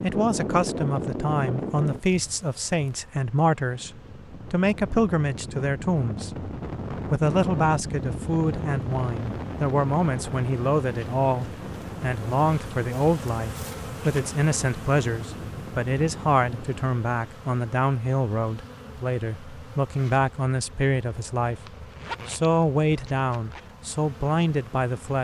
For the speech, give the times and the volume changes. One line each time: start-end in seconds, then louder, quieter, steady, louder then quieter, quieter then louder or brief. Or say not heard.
0.0-21.6 steady
22.2-25.1 brief.